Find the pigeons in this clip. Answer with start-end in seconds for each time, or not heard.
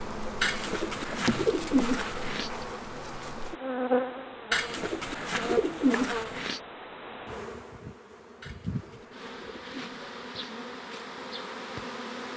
0.4-2.5, 4.5-6.6, 8.4-10.5.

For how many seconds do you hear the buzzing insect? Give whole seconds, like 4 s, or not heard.
12 s.